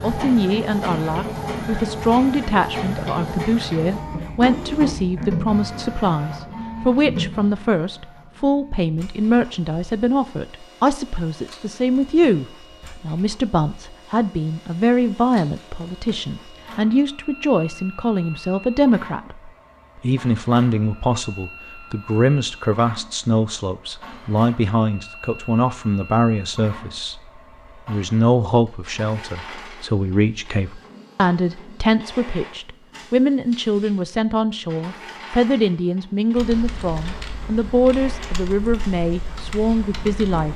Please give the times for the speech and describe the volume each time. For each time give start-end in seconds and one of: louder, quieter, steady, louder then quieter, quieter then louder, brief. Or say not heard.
0.0-27.2 steady
27.9-40.5 steady.